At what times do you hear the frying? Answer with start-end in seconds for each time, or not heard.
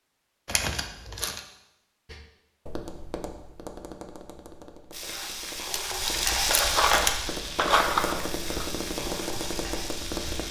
4.9-10.4.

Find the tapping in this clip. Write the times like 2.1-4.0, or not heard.
2.0-10.4.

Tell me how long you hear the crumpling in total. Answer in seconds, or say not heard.
2 s.